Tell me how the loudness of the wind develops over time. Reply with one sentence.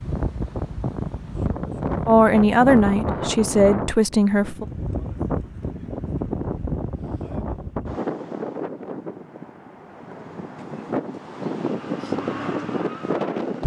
The loudness of the wind goes down, then up.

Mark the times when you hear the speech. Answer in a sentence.
The speech can be heard from 2.0 to 4.7 s.